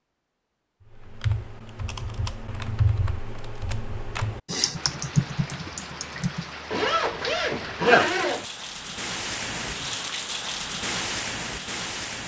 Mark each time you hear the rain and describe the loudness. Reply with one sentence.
You can hear the rain from 4.8 to 12.2 s, getting louder.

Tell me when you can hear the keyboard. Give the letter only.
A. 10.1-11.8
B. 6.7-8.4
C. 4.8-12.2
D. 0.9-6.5
D.